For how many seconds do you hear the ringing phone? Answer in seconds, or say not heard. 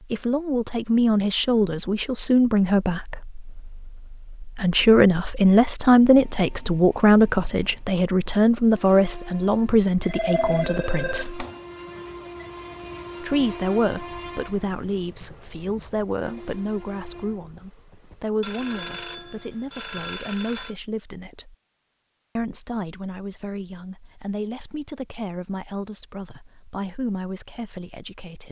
5 s.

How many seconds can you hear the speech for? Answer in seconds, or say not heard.
26 s.